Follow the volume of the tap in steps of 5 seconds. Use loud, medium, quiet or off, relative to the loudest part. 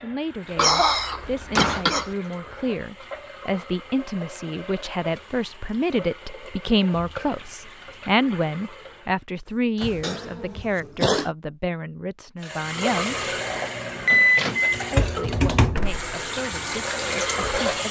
quiet, quiet, loud, loud.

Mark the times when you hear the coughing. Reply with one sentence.
You can hear the coughing from 0.6 to 2.1 s and from 10.0 to 11.3 s.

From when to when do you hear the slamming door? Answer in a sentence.
The slamming door can be heard from 1.2 to 1.9 s, from 9.4 to 10.2 s and from 15.7 to 16.1 s.